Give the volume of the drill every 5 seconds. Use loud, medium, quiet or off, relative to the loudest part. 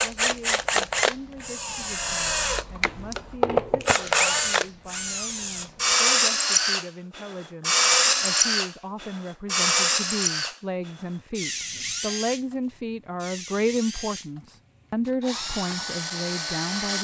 loud, loud, medium, medium.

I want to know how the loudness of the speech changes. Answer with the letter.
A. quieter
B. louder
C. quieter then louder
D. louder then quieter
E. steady
B.